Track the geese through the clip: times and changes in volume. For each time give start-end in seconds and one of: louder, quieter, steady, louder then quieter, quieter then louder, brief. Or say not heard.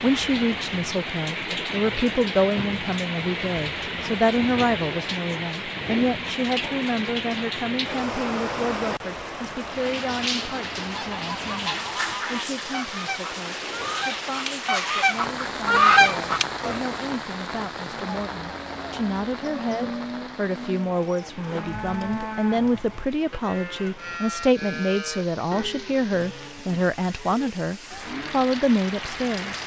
10.8-16.9 louder.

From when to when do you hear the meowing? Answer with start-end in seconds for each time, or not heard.
not heard.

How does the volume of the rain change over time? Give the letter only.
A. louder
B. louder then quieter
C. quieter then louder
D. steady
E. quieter
E.